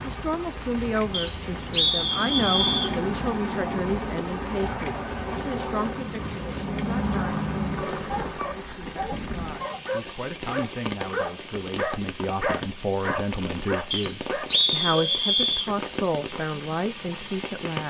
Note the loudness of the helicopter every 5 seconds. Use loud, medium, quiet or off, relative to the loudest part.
loud, loud, off, off.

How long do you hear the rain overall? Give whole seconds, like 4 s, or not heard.
18 s.